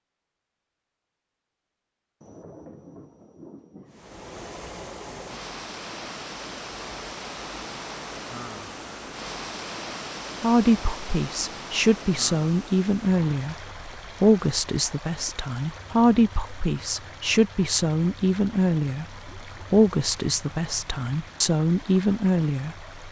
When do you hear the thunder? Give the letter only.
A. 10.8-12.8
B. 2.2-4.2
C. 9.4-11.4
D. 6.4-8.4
B.